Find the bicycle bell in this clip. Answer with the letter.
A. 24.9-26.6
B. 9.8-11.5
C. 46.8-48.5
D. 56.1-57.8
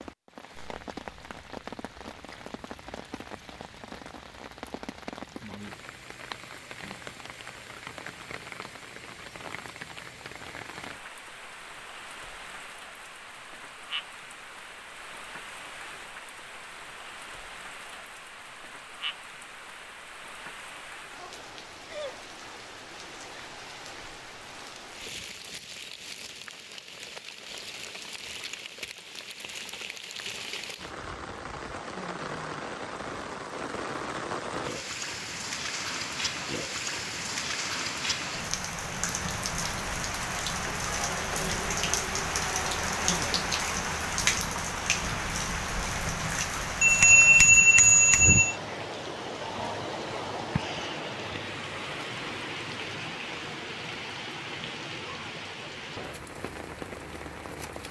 C.